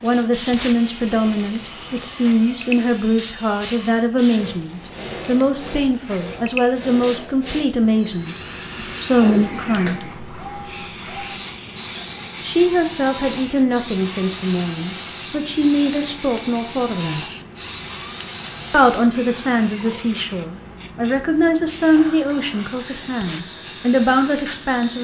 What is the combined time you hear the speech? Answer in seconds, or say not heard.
21 s.